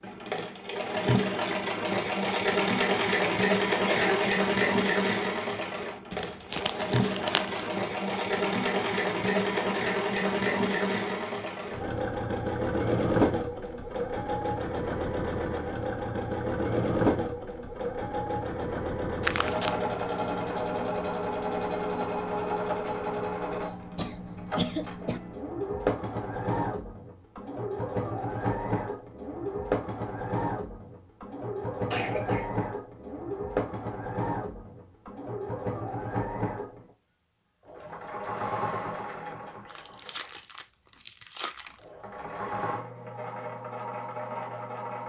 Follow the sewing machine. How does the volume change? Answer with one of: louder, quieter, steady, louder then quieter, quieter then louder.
quieter.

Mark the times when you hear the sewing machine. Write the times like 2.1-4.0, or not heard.
0.0-45.0.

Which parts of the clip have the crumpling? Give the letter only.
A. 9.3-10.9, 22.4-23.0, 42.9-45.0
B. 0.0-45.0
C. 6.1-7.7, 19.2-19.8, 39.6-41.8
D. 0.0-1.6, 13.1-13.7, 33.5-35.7
C.